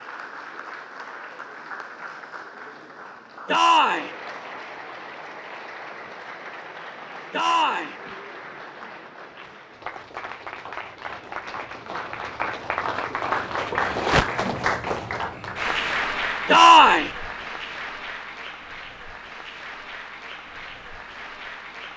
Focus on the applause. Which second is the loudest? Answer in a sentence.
The volume of the applause peaks at 14 seconds.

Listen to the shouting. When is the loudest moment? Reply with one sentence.
The loudest moment of the shouting is at 17 seconds.